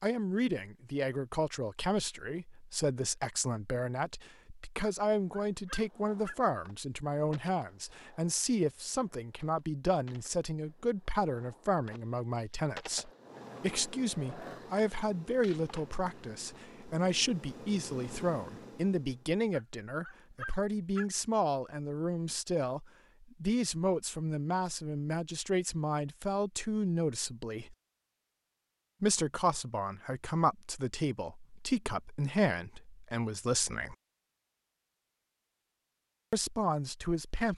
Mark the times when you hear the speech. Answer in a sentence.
You can hear the speech from 0.0 to 27.8 s, from 29.0 to 34.0 s and from 36.3 to 37.5 s.